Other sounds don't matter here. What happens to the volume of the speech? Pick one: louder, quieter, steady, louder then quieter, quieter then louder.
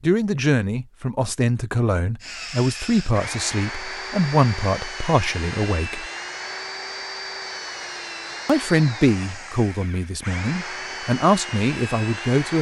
steady.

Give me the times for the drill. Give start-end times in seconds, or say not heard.
2.2-12.5.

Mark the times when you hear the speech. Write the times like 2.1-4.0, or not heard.
0.0-6.0, 8.4-12.5.